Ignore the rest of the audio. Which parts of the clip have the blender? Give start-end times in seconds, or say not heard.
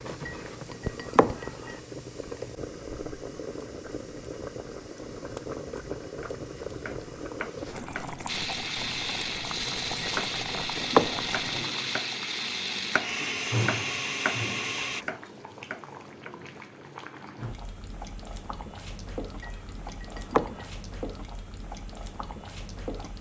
8.2-15.1.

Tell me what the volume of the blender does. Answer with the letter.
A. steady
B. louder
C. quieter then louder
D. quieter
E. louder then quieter
A.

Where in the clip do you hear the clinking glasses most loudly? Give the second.
11 s.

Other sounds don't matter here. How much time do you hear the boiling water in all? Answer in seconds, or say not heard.
23 s.